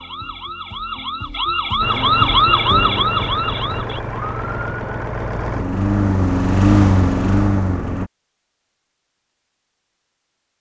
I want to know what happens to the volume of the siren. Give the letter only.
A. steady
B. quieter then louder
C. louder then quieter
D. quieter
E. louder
C.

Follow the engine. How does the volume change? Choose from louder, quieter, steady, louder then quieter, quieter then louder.
louder.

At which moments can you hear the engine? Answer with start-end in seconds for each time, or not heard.
1.8-8.1.